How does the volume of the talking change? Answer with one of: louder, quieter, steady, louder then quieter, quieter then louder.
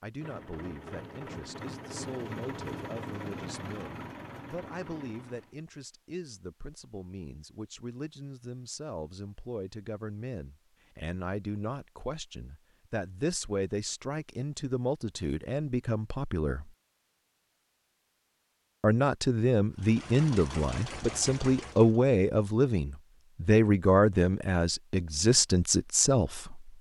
louder.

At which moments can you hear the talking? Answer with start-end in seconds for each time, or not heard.
0.0-16.7, 18.8-26.7.